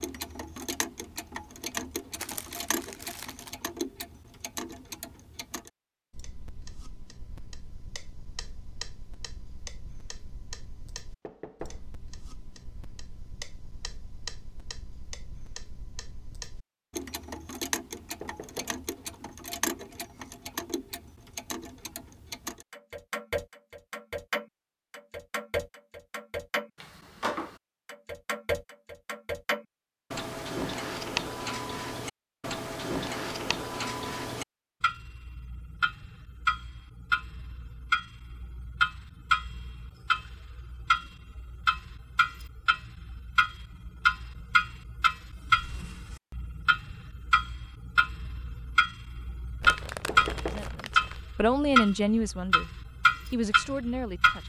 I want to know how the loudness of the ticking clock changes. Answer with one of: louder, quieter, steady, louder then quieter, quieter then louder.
louder.